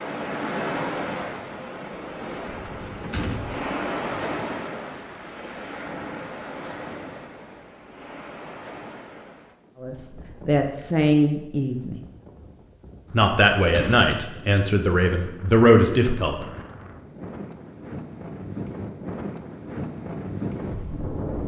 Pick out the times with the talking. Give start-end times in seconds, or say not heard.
9.8-12.0, 13.1-16.4.